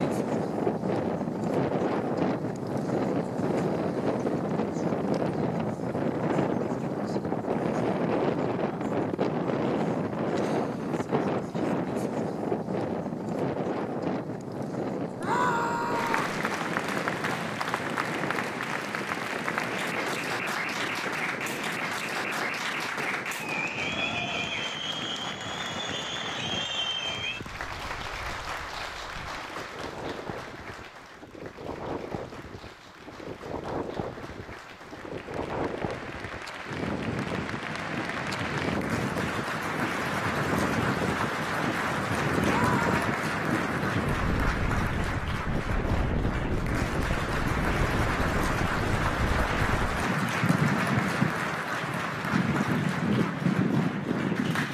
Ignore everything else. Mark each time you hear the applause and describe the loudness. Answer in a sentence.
You can hear the applause from 15.9 to 54.6 s, getting quieter then louder.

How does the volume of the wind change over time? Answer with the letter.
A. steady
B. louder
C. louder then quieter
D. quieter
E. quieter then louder
E.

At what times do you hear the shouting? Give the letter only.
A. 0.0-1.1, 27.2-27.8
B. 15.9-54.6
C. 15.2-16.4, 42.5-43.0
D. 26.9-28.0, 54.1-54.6
C.